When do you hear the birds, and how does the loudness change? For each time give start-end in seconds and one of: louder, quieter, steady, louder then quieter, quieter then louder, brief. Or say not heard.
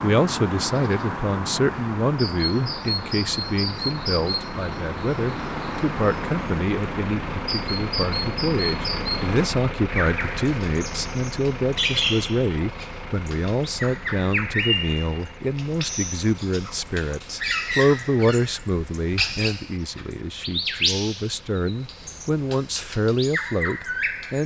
0.0-24.4 steady.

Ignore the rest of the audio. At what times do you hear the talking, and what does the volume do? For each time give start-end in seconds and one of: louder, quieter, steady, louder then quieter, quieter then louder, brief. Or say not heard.
0.0-24.4 steady.